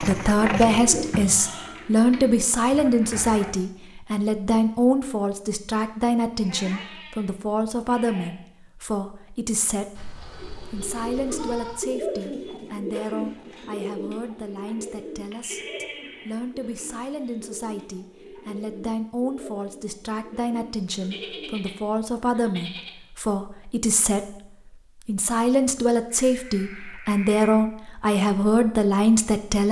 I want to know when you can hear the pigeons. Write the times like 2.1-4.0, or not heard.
0.0-3.5, 10.3-21.7.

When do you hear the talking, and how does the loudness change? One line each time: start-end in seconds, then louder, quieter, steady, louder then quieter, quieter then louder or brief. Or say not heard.
0.0-29.6 quieter then louder.